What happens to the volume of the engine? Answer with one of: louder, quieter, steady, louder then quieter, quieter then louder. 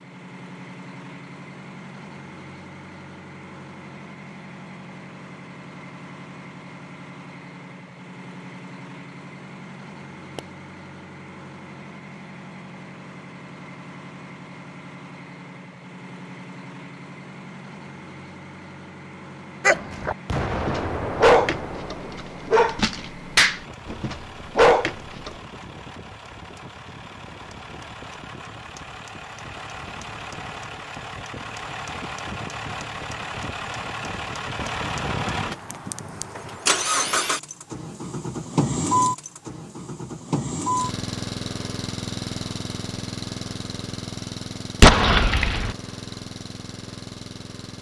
louder.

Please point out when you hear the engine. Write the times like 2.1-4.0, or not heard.
0.0-47.7.